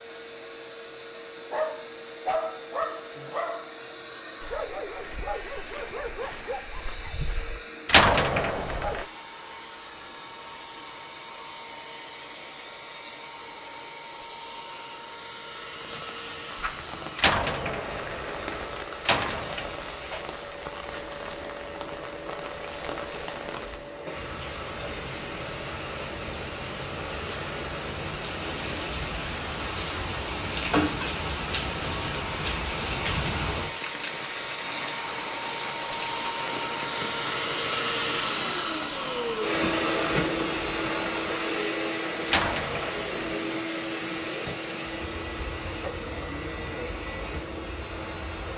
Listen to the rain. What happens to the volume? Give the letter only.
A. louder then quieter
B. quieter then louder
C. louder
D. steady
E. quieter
A.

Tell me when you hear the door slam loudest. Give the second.
8 s.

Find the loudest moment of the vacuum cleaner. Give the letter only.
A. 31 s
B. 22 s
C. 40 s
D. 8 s
C.